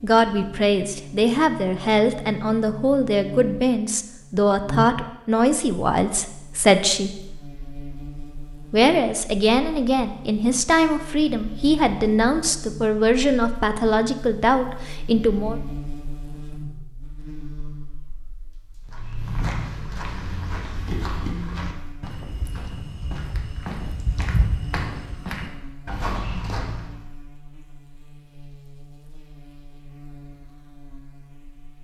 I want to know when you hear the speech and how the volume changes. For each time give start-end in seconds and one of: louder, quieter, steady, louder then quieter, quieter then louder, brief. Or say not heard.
0.0-7.2 steady
8.7-15.6 steady.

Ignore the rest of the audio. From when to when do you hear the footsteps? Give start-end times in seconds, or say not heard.
18.9-26.9.